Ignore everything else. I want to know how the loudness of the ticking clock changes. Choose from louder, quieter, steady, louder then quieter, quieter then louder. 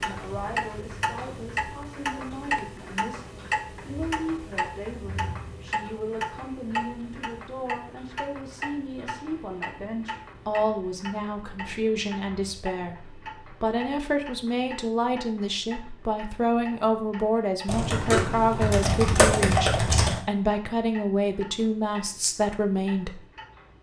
quieter.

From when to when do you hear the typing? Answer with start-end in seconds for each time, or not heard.
17.6-20.2.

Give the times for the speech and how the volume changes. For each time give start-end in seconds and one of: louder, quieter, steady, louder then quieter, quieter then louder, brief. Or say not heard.
0.0-23.2 louder.